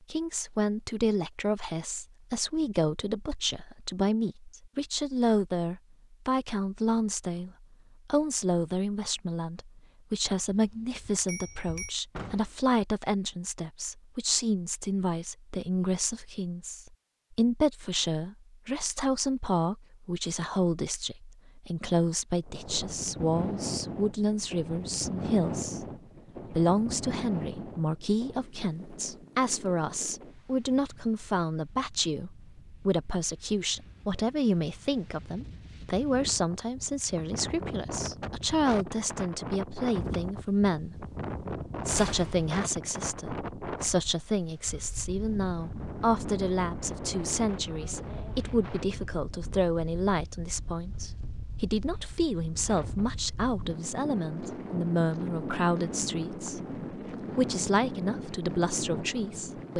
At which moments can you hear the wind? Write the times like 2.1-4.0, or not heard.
22.4-59.7.